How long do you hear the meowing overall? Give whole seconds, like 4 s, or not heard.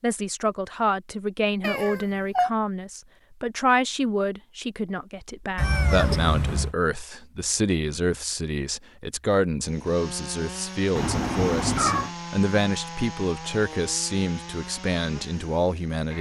3 s.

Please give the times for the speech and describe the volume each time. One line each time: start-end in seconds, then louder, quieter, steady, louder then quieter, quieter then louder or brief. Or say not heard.
0.0-16.1 steady.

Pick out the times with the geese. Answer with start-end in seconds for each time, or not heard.
not heard.